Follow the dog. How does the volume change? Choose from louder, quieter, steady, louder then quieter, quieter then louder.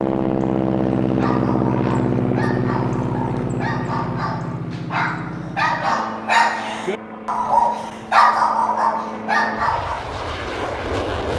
louder.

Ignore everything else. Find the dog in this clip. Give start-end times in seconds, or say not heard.
1.1-10.0.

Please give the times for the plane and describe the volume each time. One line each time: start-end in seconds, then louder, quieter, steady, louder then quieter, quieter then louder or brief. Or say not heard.
0.0-11.3 quieter then louder.